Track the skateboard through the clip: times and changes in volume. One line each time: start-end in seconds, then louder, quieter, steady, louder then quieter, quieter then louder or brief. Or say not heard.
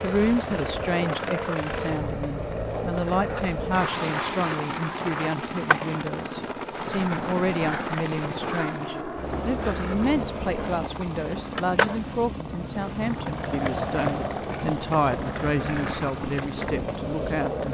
0.0-17.6 steady.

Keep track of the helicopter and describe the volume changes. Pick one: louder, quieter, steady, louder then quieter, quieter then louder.
steady.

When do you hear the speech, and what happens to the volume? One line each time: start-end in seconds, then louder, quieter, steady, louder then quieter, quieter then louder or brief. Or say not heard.
0.0-17.6 steady.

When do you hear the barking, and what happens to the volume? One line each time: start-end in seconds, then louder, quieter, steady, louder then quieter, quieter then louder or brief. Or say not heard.
not heard.